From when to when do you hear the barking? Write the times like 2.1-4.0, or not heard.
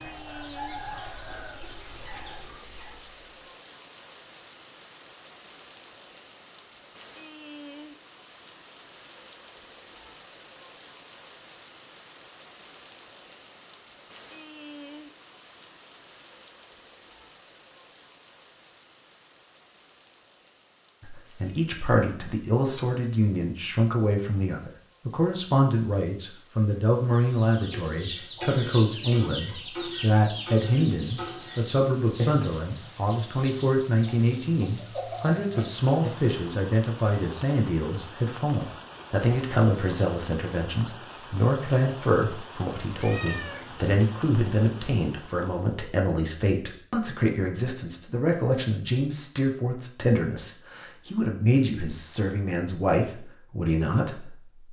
not heard.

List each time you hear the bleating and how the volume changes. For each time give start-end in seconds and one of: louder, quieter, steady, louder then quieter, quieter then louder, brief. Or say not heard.
not heard.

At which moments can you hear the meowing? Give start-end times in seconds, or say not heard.
43.0-44.0.